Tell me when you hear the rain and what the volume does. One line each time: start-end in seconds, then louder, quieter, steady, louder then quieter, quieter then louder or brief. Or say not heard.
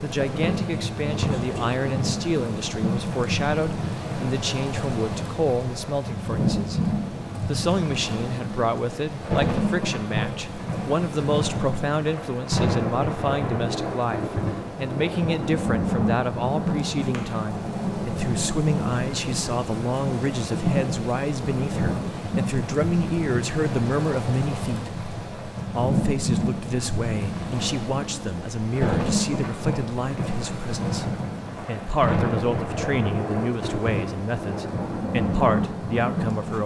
0.0-36.6 steady.